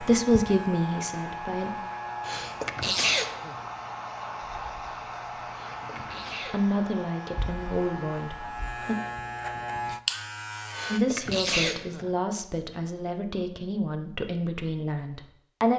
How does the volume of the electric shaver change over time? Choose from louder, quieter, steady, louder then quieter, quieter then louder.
quieter then louder.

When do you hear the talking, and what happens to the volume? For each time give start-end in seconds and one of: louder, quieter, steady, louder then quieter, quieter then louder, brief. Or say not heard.
0.0-1.7 brief
6.5-8.9 brief
10.9-15.7 steady.